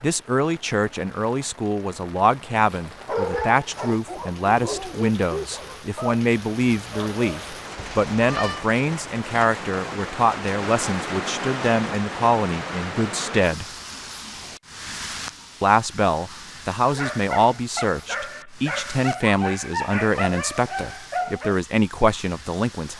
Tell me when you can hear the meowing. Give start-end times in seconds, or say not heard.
7.8-8.7.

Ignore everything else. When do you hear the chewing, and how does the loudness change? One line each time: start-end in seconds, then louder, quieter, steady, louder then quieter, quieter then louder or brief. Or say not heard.
not heard.